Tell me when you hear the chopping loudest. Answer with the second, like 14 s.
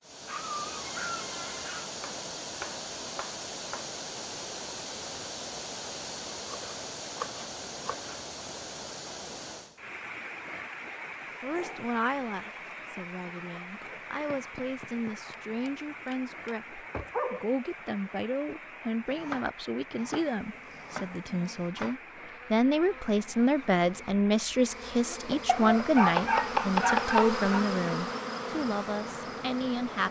27 s.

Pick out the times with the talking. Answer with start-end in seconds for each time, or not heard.
11.4-30.0.